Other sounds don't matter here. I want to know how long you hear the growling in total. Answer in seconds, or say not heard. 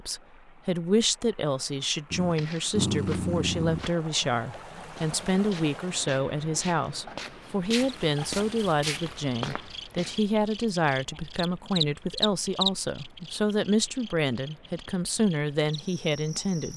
2 s.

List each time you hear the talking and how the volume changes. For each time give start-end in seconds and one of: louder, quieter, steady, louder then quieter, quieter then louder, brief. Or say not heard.
0.0-16.7 steady.